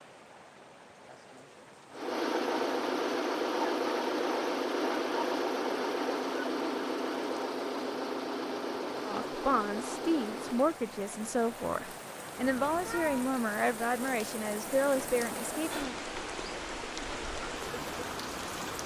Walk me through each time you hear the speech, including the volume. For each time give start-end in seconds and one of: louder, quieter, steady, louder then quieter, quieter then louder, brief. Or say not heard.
9.0-15.9 steady.